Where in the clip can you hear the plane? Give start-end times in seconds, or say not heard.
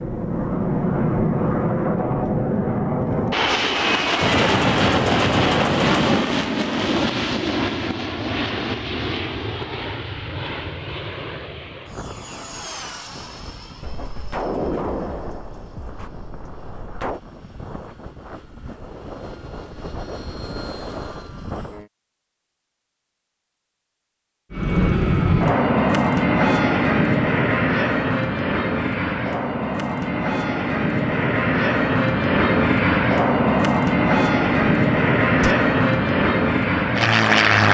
0.0-21.9, 24.5-37.6.